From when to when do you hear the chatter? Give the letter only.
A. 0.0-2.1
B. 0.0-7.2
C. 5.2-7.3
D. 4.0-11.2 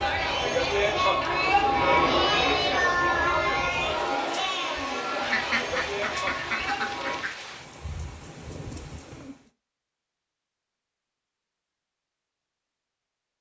B.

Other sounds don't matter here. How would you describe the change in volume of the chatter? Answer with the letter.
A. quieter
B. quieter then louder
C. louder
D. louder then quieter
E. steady
A.